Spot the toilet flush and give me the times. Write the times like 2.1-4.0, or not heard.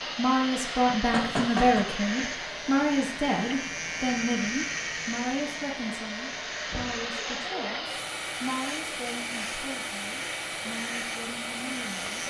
not heard.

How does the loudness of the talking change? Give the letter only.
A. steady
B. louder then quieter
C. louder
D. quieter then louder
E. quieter
E.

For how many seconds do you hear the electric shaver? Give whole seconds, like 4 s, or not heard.
12 s.